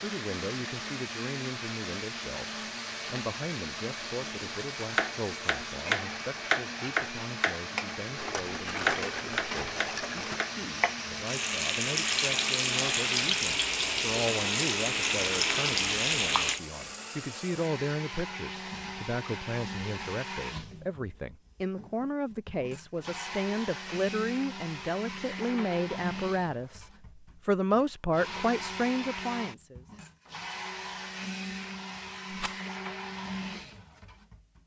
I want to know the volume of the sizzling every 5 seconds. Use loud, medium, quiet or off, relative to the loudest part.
quiet, quiet, loud, loud, off, off, off.